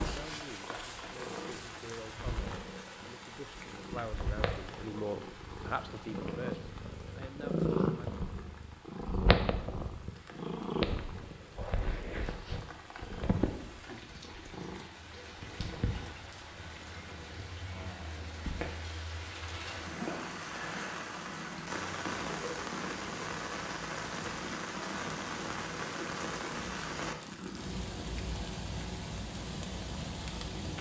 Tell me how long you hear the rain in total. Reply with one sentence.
You can hear the rain for 31 seconds altogether.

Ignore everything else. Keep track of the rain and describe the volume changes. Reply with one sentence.
The volume of the rain goes down, then up.